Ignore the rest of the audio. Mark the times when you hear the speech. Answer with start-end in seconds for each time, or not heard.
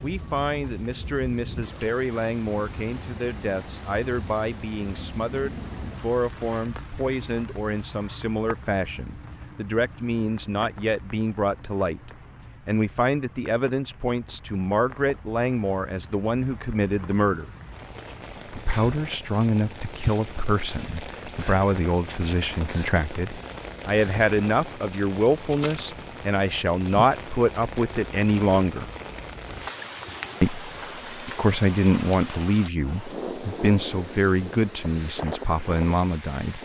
0.0-17.5, 18.4-28.9, 30.4-36.5.